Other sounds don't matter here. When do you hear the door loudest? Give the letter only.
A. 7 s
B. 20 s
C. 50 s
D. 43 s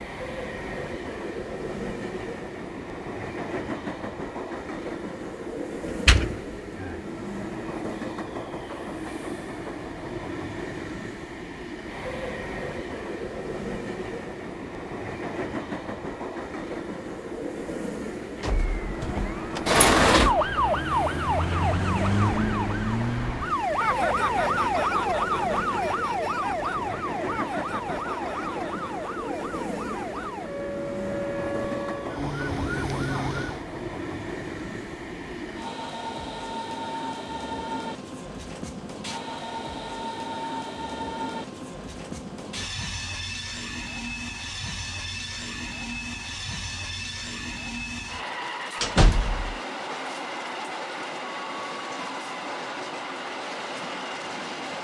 B.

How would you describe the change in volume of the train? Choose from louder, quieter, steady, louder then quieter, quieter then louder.
steady.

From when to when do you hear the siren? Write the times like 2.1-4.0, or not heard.
18.4-33.6.